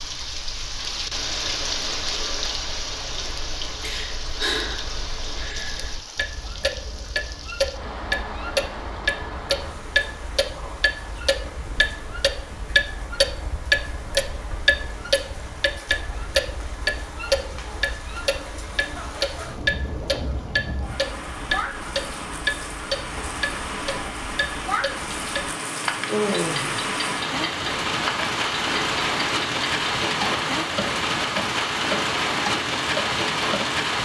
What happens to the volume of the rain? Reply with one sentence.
The volume of the rain goes down, then up.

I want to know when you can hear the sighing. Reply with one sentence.
You can hear the sighing from 3.8 to 6.0 s and from 26.1 to 26.9 s.